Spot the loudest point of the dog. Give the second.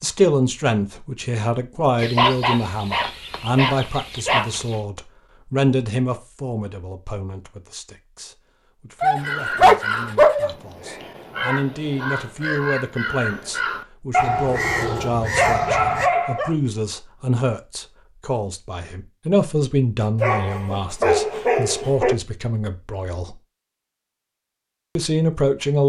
10 s.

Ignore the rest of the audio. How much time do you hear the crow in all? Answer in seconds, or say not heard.
7 s.